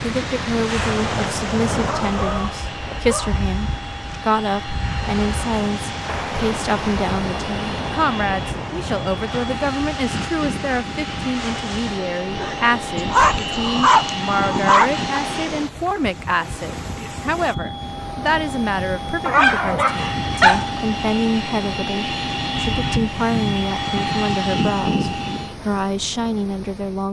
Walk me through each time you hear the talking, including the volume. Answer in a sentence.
You can hear the talking from 0.0 to 27.0 s, at a steady volume.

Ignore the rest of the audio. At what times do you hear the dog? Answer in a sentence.
The dog can be heard from 1.9 to 3.5 s, from 12.9 to 15.2 s and from 19.2 to 20.7 s.